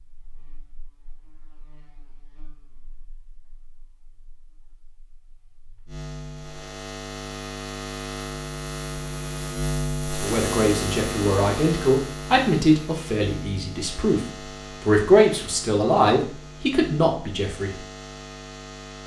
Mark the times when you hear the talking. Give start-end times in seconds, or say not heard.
10.2-17.8.